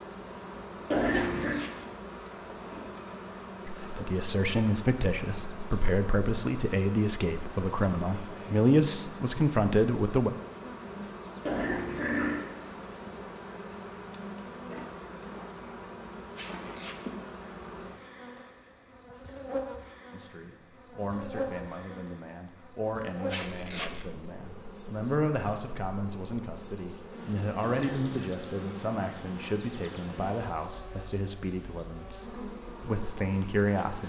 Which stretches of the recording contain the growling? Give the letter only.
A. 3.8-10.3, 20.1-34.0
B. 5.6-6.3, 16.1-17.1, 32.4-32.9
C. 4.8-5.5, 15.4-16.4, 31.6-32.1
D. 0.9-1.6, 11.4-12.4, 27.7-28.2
D.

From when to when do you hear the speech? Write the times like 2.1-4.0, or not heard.
3.8-10.3, 20.1-34.0.